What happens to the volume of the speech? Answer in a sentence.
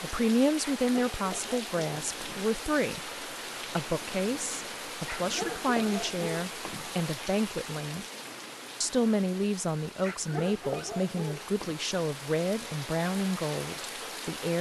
The volume of the speech stays about the same.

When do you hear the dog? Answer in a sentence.
The dog can be heard from 0.8 to 2.5 s, from 5.0 to 7.0 s and from 10.0 to 11.8 s.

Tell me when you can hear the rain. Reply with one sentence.
The rain can be heard from 0.0 to 14.5 s.